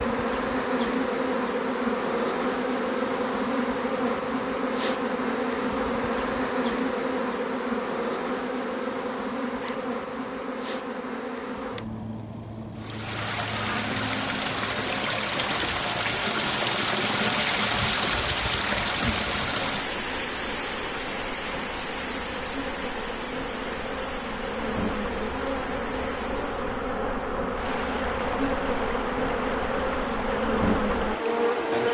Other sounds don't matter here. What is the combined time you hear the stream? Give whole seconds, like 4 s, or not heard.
19 s.